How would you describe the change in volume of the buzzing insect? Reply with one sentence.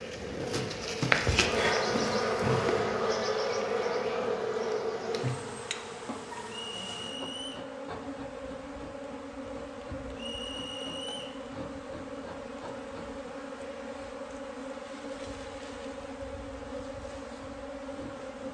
The volume of the buzzing insect goes down.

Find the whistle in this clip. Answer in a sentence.
The whistle can be heard from 6.5 to 7.7 s and from 10.2 to 11.4 s.